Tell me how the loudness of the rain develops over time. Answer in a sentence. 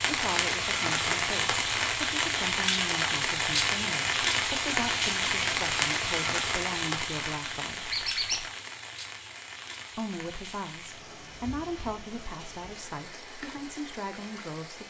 The loudness of the rain goes down.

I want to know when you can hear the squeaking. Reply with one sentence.
The squeaking can be heard from 7.9 to 8.4 s.